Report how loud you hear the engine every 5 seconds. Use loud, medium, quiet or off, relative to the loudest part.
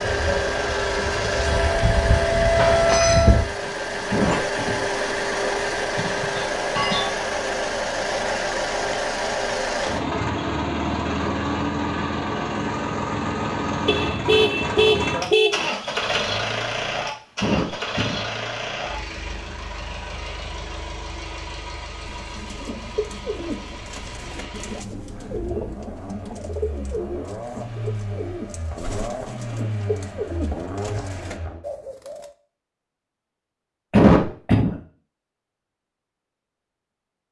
loud, loud, loud, loud, quiet, medium, medium, off.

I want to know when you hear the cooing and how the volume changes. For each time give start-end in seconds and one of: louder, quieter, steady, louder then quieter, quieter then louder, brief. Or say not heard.
22.0-32.4 steady.